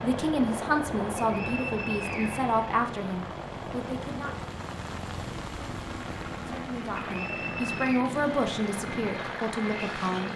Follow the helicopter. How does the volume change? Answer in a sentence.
The loudness of the helicopter goes down, then up.